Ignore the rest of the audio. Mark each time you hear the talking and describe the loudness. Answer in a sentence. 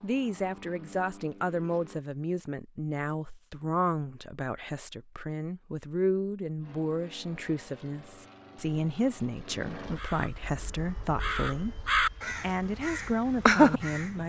The talking can be heard from 0.0 to 14.2 s, at a steady volume.